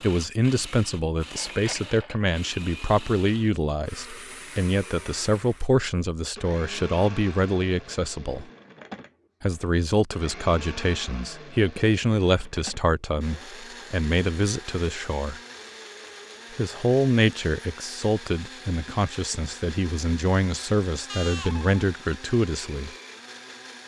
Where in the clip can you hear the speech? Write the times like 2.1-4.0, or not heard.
0.0-8.5, 9.4-15.4, 16.6-22.9.